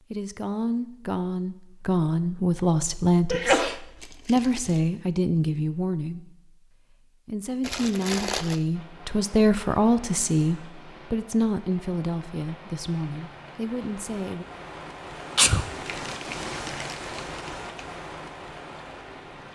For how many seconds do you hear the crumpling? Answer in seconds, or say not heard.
4 s.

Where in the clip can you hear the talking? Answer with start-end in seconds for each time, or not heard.
0.1-6.5, 7.2-14.4.